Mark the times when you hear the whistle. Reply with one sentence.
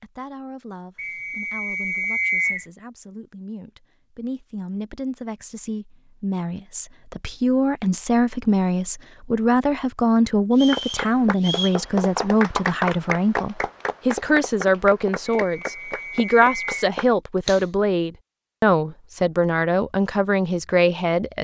The whistle can be heard from 0.9 to 2.6 s, from 10.6 to 11.8 s and from 15.2 to 16.7 s.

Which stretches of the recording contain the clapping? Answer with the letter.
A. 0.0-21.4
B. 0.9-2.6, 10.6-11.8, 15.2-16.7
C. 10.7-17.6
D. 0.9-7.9
C.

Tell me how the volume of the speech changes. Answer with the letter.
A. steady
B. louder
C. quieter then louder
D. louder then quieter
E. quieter
B.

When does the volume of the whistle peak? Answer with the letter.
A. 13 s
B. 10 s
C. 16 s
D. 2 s
D.